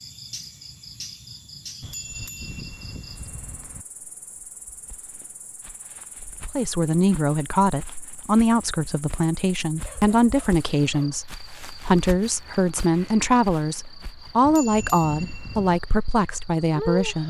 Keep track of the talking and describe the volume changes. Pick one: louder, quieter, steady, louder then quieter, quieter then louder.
steady.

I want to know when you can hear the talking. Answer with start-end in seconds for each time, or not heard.
6.5-17.2.